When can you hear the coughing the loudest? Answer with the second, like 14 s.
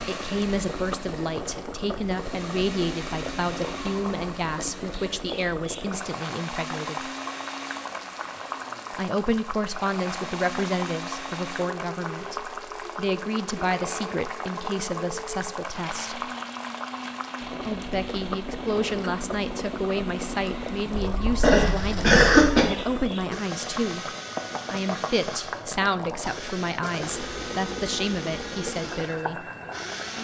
22 s.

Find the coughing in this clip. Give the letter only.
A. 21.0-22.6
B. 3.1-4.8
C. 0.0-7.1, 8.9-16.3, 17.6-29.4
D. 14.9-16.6
A.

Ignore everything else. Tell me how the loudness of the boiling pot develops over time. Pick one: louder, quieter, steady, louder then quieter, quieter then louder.
steady.